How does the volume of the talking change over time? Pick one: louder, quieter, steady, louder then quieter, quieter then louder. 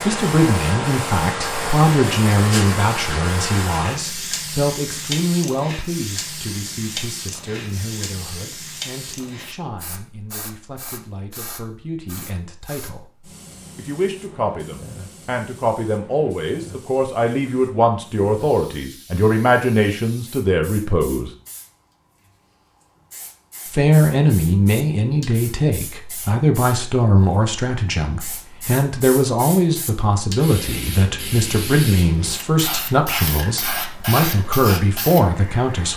quieter then louder.